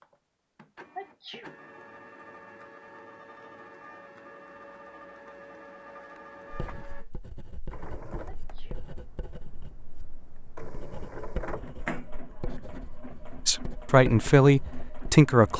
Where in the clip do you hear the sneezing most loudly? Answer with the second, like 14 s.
1 s.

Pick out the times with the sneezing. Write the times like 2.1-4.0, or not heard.
0.9-1.6, 8.2-8.8.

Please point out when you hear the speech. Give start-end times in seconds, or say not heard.
13.4-15.5.